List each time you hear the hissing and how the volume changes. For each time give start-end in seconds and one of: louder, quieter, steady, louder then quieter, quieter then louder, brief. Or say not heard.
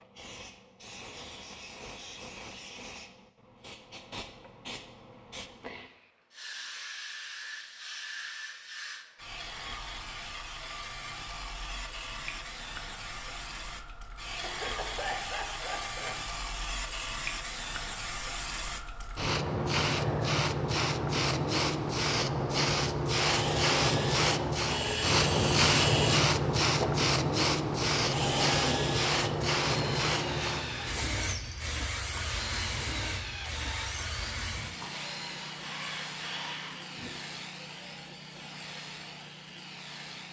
0.0-40.2 louder then quieter.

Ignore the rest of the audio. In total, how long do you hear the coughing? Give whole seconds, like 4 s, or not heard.
2 s.